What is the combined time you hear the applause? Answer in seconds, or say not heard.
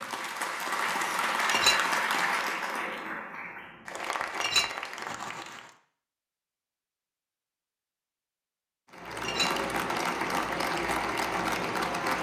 9 s.